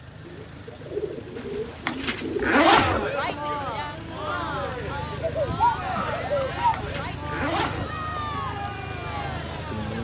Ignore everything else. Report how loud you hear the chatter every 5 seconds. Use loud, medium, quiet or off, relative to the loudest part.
loud, medium.